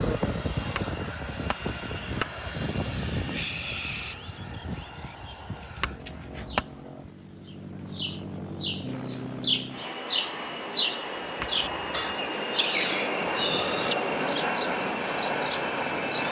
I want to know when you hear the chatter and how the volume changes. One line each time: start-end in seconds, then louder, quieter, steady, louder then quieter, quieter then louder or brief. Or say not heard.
not heard.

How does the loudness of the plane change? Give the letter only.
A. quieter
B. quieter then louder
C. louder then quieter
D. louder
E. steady
B.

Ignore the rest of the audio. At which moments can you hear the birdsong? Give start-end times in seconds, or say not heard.
2.5-16.2.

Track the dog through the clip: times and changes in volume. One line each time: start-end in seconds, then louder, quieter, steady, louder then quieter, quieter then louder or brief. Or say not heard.
not heard.